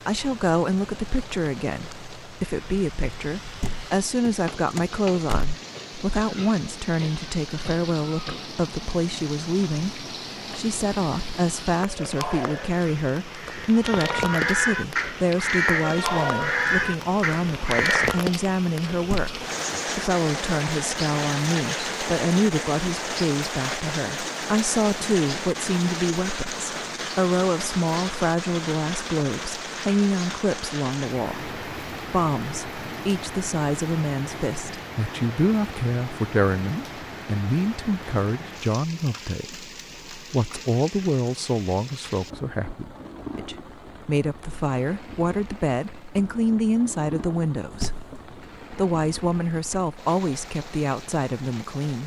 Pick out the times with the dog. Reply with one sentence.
You can't hear the dog here.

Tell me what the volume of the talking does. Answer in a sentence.
The volume of the talking stays about the same.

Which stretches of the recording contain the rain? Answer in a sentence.
You can hear the rain from 0.0 to 52.0 s.